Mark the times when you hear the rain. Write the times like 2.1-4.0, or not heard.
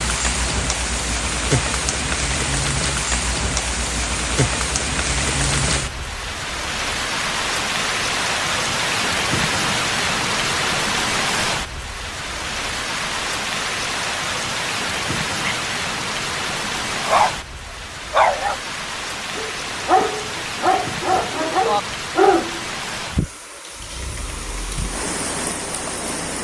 0.0-26.4.